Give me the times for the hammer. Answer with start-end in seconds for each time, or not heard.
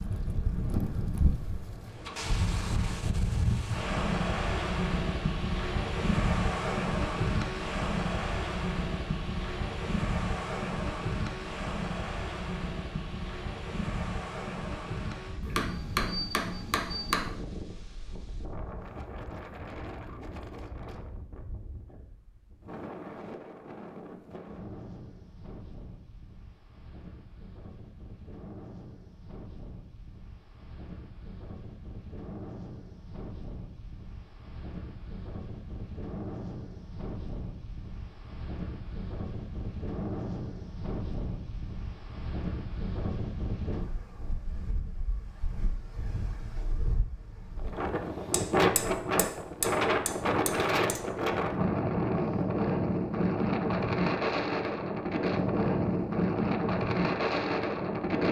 15.4-17.2, 48.3-51.0.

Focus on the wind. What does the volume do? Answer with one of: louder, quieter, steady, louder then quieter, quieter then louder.
quieter then louder.